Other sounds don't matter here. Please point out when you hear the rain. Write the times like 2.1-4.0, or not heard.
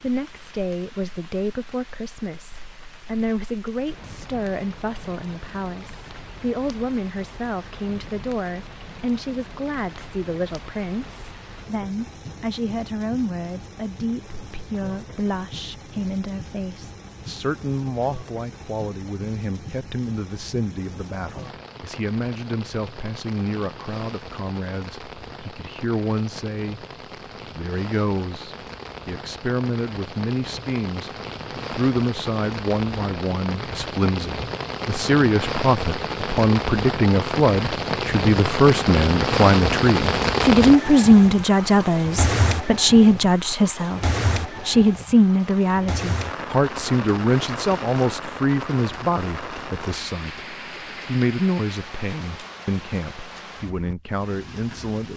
0.0-55.1.